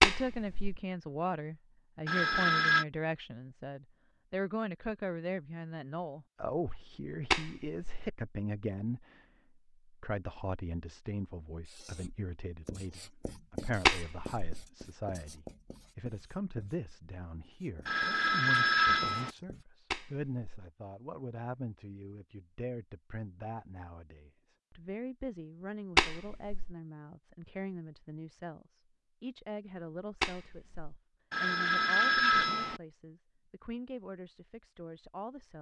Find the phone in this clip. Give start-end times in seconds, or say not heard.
2.0-2.9, 17.9-19.3, 31.3-32.8.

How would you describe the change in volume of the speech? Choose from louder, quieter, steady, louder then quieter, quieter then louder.
quieter.